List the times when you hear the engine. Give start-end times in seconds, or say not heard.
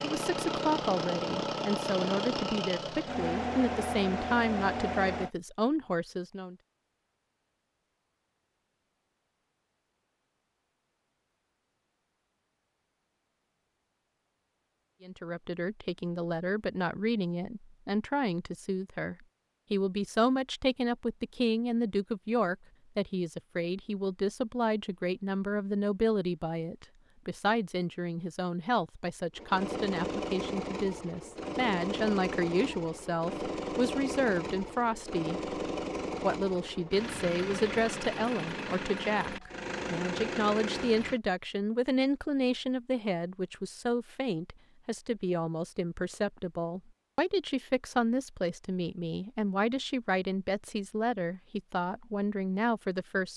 0.0-5.3, 29.4-41.2.